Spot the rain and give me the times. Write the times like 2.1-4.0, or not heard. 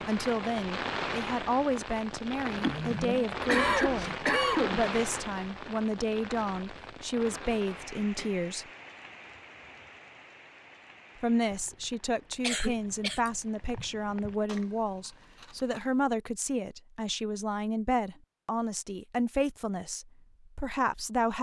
0.0-14.5.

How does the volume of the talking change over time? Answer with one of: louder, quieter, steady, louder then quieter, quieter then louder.
steady.